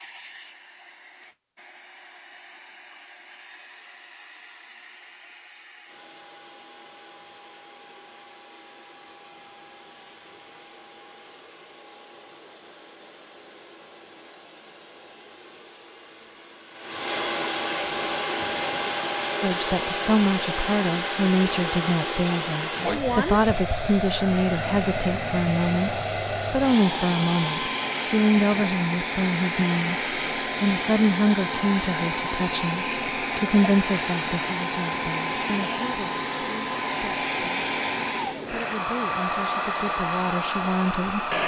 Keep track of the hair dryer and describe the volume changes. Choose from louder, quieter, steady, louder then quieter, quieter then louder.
louder.